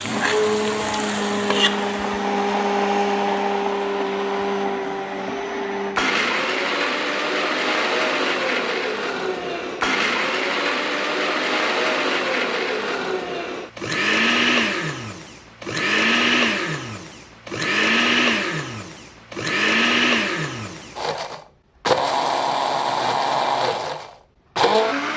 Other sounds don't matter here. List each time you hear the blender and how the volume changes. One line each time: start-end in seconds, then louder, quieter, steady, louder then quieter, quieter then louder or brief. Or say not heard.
0.0-25.1 steady.